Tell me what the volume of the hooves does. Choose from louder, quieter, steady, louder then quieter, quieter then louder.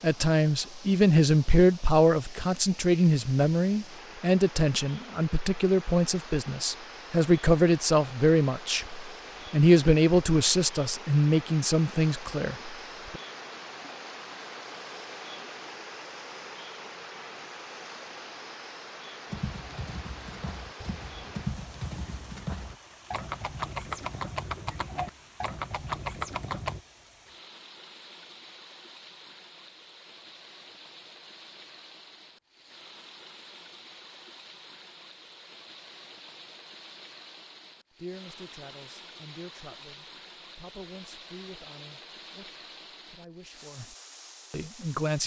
louder.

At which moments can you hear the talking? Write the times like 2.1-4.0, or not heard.
0.0-13.2, 37.9-43.9, 44.5-45.2.